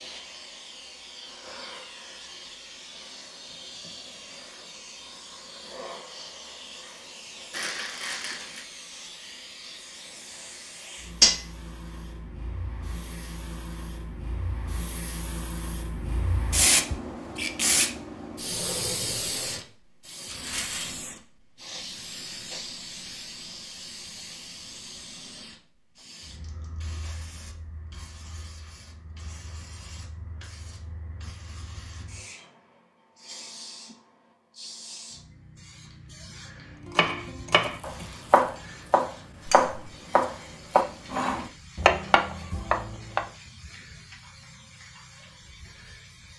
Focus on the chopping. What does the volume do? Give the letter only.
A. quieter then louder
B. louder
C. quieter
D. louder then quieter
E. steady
E.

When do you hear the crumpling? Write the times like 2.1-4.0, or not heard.
7.5-8.7, 20.2-21.1, 37.6-38.6.